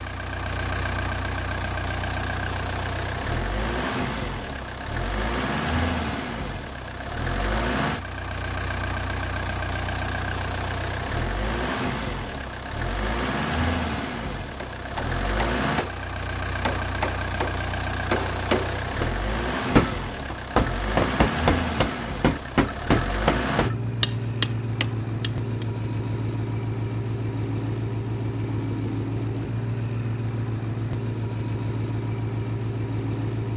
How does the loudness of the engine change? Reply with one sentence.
The loudness of the engine stays about the same.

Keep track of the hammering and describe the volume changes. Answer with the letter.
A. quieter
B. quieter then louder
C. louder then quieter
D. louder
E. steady
D.